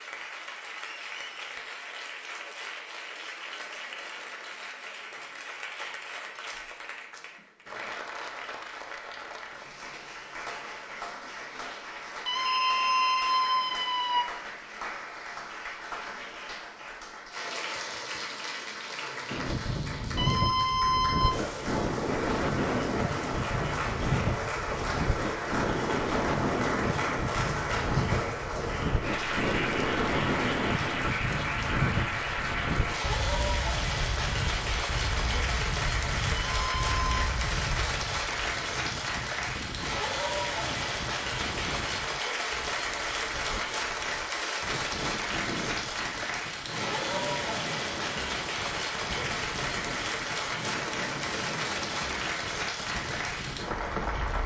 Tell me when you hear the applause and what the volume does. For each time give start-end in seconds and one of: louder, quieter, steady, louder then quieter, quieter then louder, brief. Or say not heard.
0.0-54.4 louder.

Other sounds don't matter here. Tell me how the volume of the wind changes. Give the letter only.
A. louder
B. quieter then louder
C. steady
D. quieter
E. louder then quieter
D.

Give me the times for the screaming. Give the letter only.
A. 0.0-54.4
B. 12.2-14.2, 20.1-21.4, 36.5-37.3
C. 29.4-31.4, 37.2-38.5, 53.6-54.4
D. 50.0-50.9
B.